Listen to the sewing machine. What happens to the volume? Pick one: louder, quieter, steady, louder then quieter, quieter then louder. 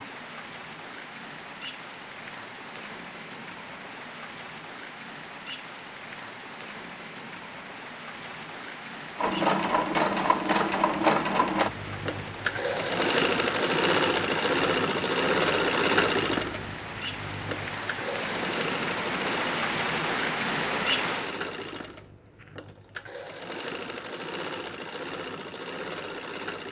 quieter.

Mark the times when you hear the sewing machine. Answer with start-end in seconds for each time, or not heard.
9.2-26.6.